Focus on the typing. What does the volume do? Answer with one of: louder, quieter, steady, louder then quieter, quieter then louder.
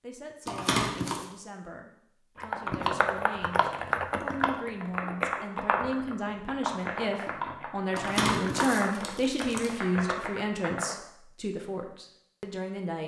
quieter.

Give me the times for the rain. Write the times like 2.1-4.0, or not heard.
not heard.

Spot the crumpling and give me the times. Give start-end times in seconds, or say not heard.
0.5-1.2, 8.0-9.7.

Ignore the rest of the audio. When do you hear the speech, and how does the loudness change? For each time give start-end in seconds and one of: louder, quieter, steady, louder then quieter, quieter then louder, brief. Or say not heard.
0.0-13.0 louder then quieter.